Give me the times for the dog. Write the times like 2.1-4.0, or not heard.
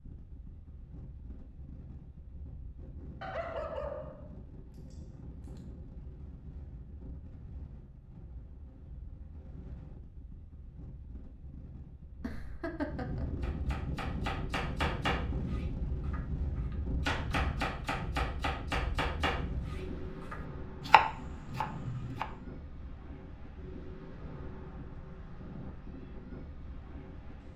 3.2-5.6.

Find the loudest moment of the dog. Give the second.
4 s.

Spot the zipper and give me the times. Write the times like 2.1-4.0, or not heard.
not heard.